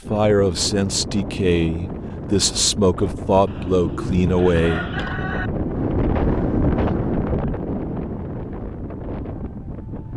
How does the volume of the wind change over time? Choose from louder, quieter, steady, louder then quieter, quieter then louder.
louder then quieter.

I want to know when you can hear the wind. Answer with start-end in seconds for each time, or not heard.
0.0-10.1.